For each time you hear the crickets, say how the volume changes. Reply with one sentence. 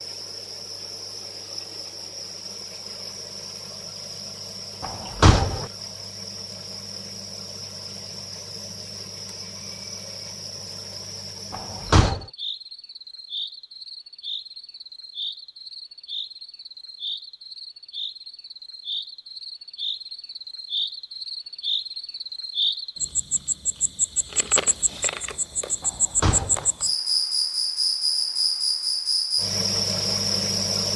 The crickets can be heard from 0.0 to 30.9 s, getting louder.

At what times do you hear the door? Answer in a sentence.
The door can be heard from 4.8 to 5.7 s, from 11.5 to 12.2 s and from 25.8 to 26.6 s.